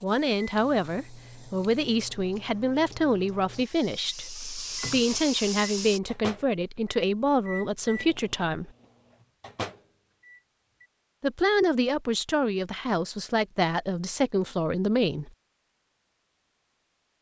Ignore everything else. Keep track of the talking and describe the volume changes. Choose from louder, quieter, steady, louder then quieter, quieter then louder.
steady.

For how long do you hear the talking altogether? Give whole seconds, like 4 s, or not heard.
13 s.